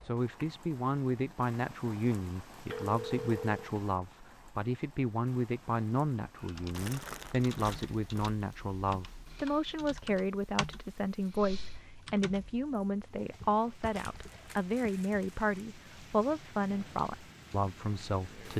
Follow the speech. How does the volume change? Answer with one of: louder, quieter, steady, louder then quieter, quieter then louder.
steady.